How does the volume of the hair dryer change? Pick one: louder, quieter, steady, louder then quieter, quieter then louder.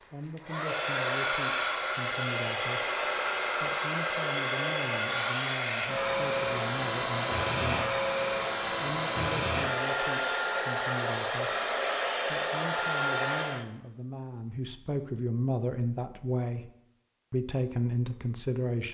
steady.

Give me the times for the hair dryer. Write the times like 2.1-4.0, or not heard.
0.0-13.7.